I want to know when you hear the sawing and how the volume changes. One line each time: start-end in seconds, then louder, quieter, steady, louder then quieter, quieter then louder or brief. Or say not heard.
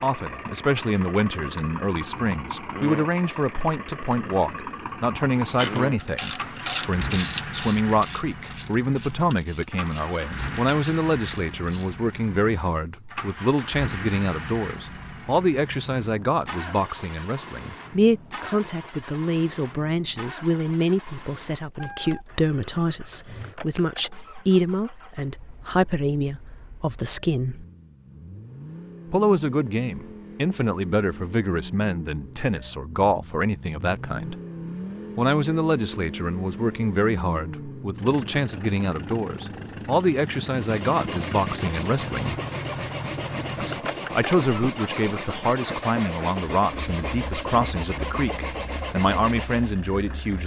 40.5-49.8 steady.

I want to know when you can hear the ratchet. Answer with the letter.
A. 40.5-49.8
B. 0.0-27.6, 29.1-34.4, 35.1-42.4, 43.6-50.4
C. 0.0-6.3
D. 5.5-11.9
D.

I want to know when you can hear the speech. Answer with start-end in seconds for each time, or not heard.
0.0-27.6, 29.1-34.4, 35.1-42.4, 43.6-50.4.